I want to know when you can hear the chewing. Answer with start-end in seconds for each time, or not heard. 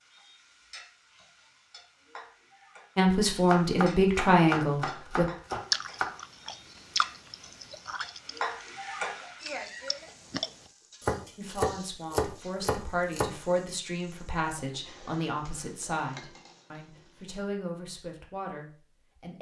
5.7-10.5.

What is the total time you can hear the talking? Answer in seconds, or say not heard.
10 s.